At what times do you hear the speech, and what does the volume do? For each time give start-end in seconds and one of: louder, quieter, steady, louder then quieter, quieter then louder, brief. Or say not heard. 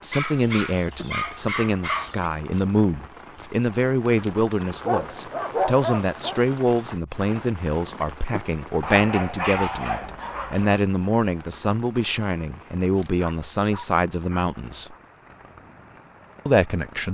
0.0-14.9 steady
16.4-17.0 brief.